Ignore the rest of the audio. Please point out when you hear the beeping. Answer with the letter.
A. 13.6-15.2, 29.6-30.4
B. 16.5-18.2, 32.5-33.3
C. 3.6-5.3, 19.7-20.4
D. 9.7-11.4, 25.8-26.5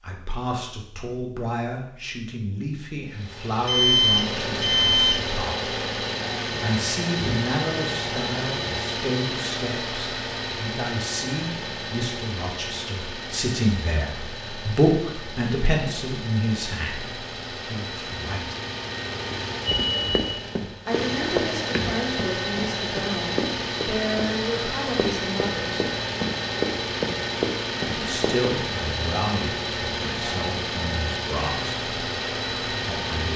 C.